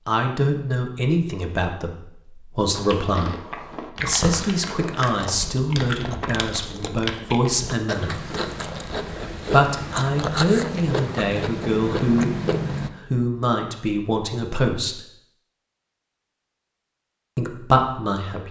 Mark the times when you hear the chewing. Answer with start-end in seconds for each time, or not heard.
2.8-12.9.